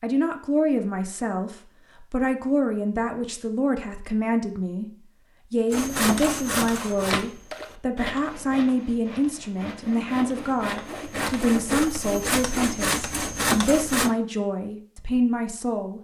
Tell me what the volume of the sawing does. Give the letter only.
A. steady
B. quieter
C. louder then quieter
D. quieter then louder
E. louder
D.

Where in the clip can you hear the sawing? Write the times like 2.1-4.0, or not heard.
5.7-14.1.